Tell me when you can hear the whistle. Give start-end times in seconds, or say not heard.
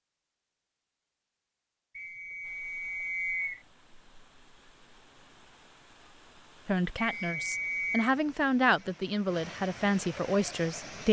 1.9-3.6, 7.0-8.1.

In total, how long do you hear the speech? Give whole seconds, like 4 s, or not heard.
4 s.